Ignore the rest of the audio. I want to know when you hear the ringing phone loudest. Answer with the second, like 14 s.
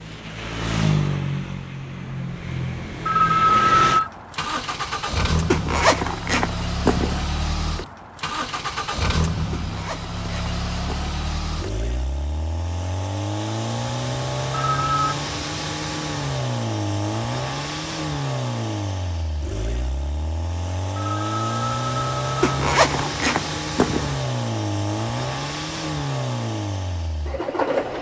4 s.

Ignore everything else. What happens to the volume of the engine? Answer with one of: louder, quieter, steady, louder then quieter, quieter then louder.
steady.